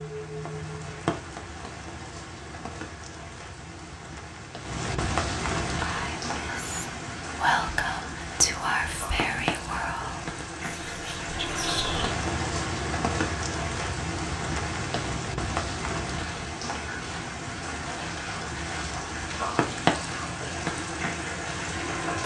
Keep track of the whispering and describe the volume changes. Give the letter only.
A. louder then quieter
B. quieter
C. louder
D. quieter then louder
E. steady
A.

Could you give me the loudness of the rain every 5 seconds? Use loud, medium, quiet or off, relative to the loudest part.
medium, loud, loud, loud, loud.